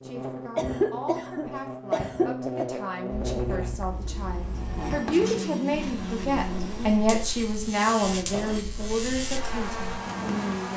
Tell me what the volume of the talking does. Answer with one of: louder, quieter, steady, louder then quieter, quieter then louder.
louder then quieter.